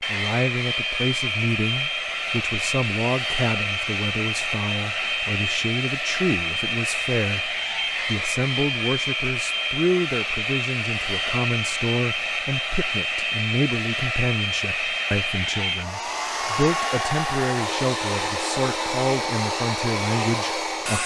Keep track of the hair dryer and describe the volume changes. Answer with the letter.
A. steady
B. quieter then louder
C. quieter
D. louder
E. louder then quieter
A.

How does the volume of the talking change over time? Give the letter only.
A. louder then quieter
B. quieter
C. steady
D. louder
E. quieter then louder
C.